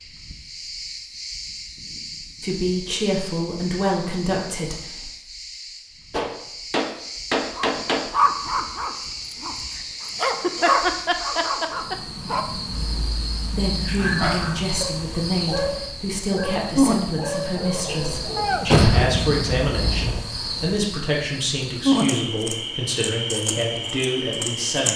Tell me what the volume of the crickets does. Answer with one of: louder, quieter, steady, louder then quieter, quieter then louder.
louder.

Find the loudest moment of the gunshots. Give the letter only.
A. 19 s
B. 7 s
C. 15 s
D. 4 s
A.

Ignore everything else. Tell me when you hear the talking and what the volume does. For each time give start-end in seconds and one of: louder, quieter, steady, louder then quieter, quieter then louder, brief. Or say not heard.
2.4-5.1 brief
13.6-24.9 steady.